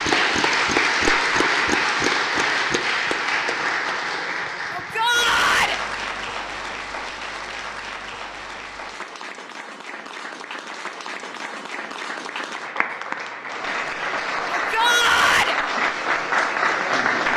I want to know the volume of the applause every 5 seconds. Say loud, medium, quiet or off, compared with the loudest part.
loud, medium, medium, loud.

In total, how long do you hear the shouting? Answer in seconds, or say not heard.
2 s.